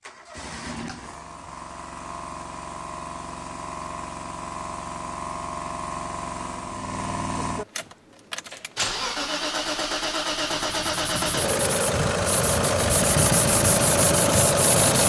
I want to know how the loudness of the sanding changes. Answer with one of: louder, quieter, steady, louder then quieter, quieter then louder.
louder.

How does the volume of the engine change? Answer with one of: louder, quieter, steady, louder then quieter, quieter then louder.
louder.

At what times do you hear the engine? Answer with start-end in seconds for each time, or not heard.
0.0-15.0.